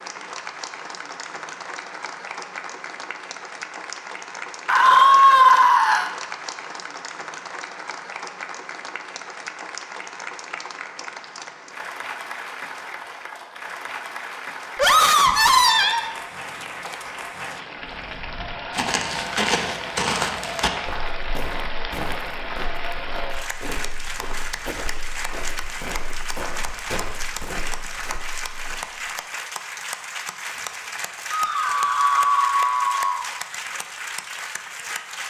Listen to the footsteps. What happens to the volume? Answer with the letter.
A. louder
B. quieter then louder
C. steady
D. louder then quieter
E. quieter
E.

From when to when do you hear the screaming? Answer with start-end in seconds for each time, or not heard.
4.7-6.1, 14.8-16.1, 31.3-33.2.